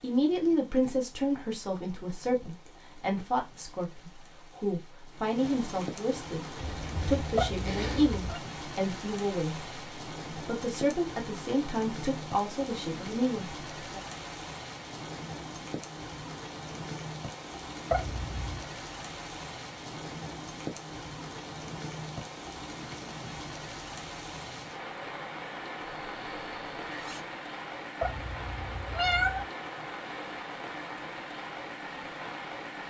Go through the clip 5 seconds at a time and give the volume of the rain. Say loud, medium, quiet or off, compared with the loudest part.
quiet, loud, loud, loud, loud, loud, loud.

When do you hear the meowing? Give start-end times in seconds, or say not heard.
7.3-8.4, 17.9-18.4, 28.0-29.4.